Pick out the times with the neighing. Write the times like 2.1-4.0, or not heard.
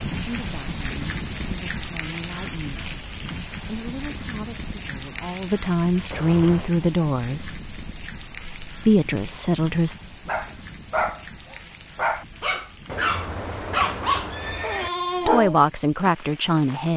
6.1-6.8, 12.8-14.9.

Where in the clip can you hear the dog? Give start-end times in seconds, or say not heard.
10.2-15.6.